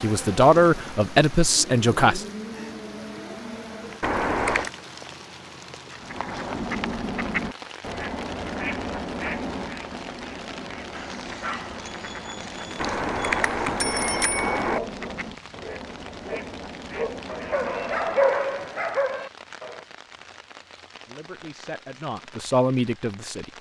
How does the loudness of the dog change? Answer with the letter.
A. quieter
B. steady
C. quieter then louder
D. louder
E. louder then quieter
D.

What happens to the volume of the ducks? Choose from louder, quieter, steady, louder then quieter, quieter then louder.
quieter.